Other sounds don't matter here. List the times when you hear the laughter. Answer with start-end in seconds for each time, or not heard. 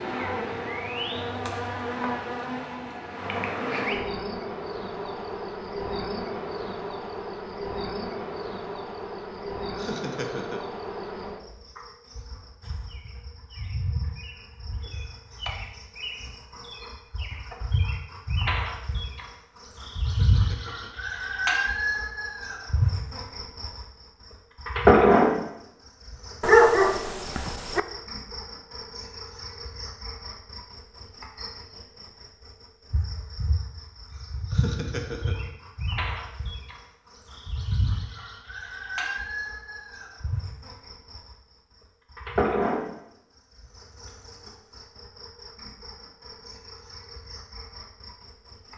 9.8-10.7, 20.1-20.9, 34.5-35.4.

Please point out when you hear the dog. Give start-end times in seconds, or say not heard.
26.4-27.8.